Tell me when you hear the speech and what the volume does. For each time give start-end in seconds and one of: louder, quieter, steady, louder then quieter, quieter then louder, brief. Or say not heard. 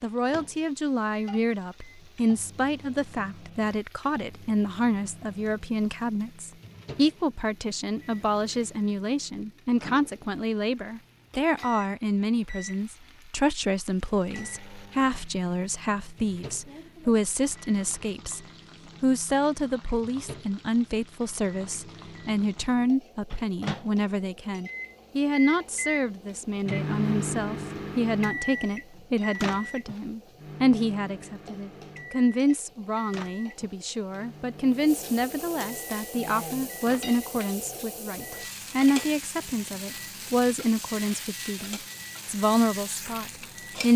0.0-18.4 steady
19.0-43.9 steady.